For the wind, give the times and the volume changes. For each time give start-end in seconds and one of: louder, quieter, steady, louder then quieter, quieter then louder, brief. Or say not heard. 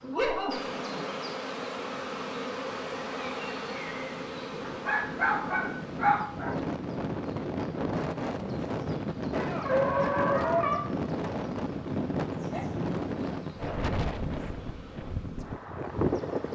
0.0-16.5 louder.